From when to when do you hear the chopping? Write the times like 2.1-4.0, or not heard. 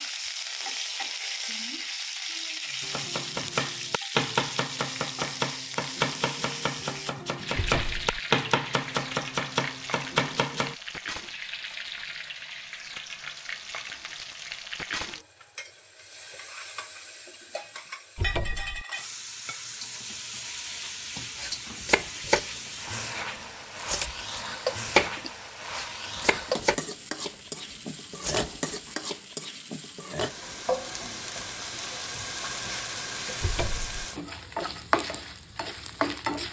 2.8-10.8, 21.4-22.6, 23.4-26.9, 27.7-29.0.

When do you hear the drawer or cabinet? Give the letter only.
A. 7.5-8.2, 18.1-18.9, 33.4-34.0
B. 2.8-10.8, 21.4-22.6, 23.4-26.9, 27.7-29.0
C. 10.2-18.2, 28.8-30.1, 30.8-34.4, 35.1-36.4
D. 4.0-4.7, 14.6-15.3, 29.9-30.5
A.